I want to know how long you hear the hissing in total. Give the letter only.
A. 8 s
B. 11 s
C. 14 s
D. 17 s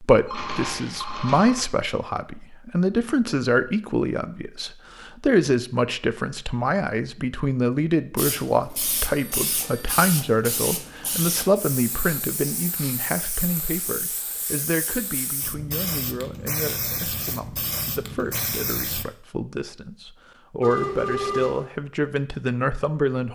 B.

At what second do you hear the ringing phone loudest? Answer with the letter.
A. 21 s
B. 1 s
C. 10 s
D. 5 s
A.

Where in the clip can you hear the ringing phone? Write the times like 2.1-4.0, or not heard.
0.2-1.6, 9.1-10.0, 20.6-21.7.